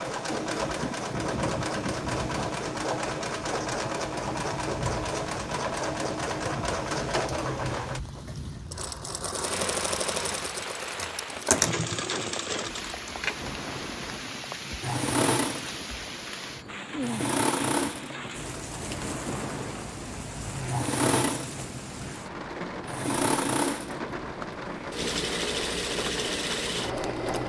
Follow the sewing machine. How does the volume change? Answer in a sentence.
The loudness of the sewing machine stays about the same.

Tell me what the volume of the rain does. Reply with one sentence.
The loudness of the rain stays about the same.